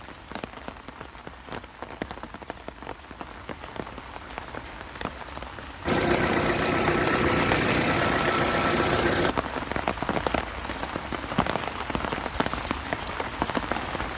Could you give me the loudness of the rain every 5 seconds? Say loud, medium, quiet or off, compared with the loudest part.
medium, loud, loud.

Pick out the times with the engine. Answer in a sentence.
You can hear the engine from 5.8 to 9.3 s.